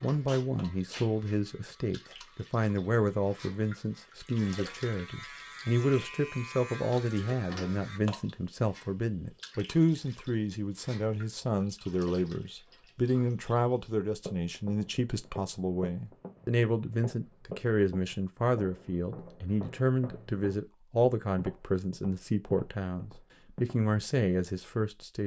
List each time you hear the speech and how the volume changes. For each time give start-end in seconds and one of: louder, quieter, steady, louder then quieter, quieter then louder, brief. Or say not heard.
0.0-25.2 steady.